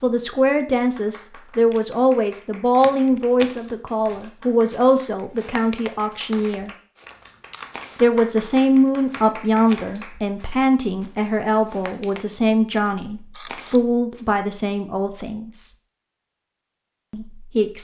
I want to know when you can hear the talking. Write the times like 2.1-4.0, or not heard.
0.0-6.7, 8.0-15.7, 17.1-17.7.